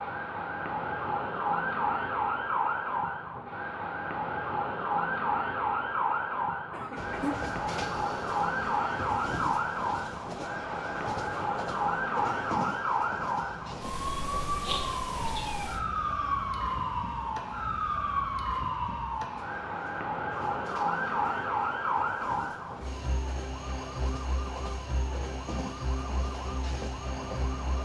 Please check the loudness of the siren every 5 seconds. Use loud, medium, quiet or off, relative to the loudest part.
loud, loud, loud, loud, loud, medium.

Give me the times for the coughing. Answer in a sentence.
The coughing can be heard from 6.7 to 7.4 s.